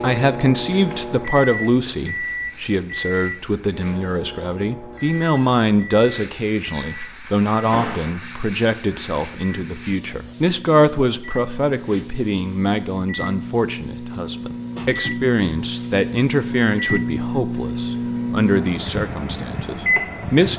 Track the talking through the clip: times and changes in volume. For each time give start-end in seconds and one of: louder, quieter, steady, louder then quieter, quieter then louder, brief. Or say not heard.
0.0-20.5 steady.